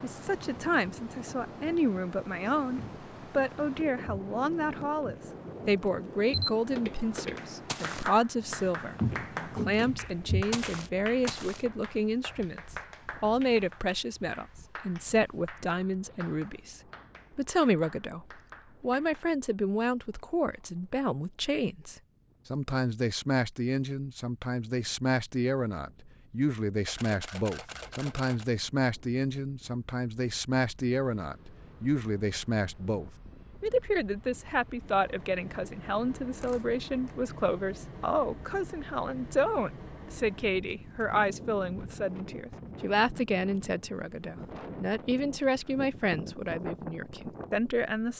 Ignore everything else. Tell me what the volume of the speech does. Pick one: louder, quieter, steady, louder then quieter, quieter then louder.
steady.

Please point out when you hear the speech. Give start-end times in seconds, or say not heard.
0.0-48.1.